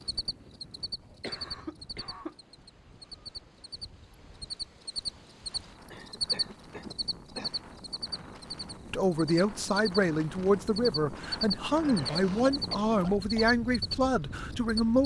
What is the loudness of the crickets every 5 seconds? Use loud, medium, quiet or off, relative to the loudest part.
medium, loud, loud.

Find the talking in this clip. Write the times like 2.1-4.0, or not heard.
8.9-15.0.